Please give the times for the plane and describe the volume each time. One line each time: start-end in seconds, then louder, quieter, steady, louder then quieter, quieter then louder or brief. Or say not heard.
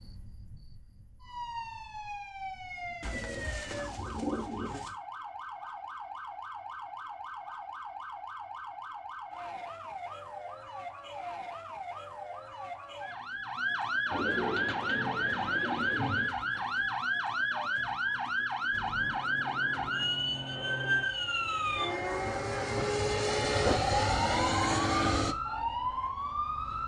18.7-25.4 louder.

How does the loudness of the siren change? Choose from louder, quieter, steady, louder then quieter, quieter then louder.
louder.